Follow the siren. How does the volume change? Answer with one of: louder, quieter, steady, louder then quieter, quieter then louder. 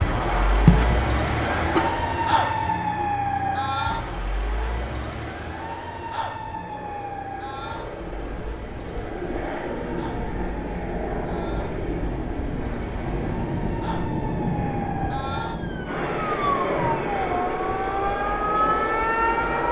quieter then louder.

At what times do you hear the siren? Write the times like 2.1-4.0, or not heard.
0.0-19.6.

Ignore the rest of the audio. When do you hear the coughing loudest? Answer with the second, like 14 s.
1 s.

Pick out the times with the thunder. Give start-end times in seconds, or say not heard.
13.2-17.2.